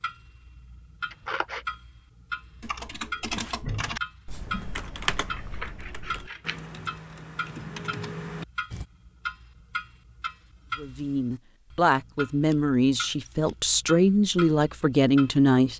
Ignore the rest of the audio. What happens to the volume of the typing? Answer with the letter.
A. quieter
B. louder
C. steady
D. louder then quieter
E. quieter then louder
E.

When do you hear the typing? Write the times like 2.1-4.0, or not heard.
2.6-8.8.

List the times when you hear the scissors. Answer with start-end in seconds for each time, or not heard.
1.1-1.6, 5.2-6.6, 12.4-13.8.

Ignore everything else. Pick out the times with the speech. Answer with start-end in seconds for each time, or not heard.
10.8-15.7.